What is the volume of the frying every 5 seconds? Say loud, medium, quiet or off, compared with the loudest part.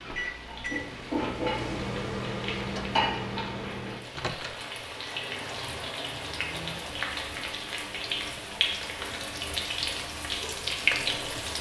medium, medium, loud.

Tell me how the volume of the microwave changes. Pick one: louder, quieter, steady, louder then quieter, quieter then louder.
quieter.